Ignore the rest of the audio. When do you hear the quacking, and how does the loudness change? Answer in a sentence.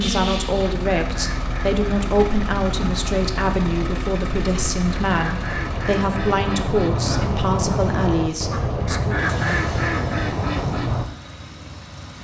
You can hear the quacking from 0.7 to 11.1 s, getting louder.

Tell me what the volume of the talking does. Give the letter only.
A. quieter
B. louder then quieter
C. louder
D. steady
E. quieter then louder
D.